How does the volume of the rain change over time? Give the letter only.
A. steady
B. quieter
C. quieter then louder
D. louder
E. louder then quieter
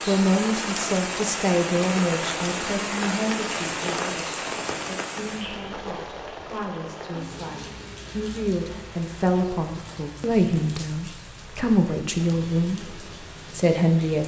B.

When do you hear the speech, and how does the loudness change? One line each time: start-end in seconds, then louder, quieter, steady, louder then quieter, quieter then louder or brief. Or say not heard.
0.1-14.2 quieter then louder.